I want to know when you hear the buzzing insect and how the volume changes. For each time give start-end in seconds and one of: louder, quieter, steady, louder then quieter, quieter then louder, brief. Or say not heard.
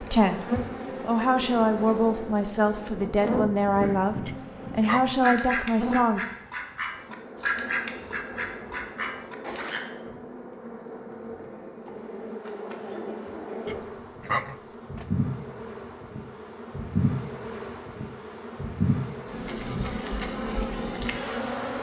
0.0-21.7 quieter then louder.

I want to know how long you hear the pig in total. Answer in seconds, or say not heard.
3 s.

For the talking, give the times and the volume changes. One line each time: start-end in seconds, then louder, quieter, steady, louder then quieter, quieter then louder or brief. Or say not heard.
0.0-6.2 steady.